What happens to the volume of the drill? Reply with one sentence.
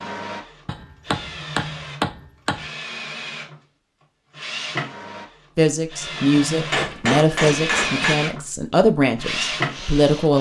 The volume of the drill goes up.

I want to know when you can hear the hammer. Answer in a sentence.
The hammer can be heard from 0.7 to 2.6 s and from 6.2 to 8.2 s.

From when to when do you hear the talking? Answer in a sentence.
The talking can be heard from 5.5 to 10.3 s.